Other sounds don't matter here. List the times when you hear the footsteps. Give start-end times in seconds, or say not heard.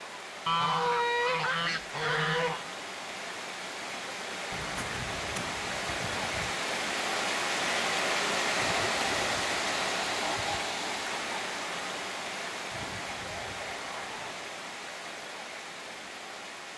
not heard.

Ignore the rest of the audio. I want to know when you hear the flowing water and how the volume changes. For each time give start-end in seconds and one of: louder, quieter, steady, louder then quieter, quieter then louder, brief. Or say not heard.
0.0-16.7 louder then quieter.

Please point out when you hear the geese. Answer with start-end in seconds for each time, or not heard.
0.5-2.6, 4.5-6.5, 8.6-10.6, 12.7-14.3.